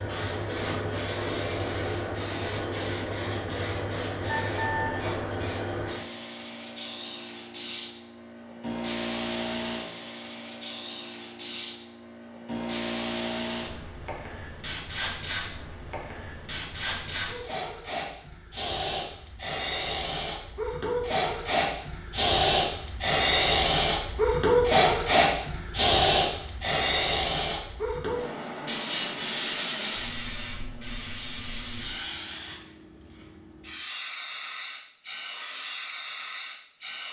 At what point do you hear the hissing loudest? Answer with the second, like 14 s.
25 s.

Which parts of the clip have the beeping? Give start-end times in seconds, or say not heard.
4.2-5.2.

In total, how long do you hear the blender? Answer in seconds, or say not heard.
not heard.